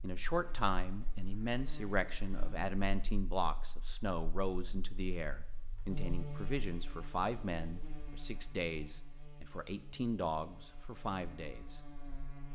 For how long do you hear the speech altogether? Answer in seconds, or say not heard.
12 s.